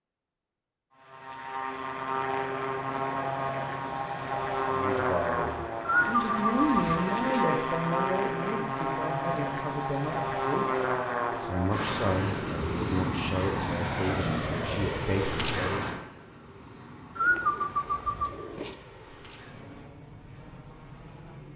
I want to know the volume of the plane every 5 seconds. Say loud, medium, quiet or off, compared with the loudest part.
loud, loud, loud, medium, quiet.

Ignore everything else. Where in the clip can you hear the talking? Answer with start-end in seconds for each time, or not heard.
4.7-15.8.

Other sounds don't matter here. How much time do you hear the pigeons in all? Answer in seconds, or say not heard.
3 s.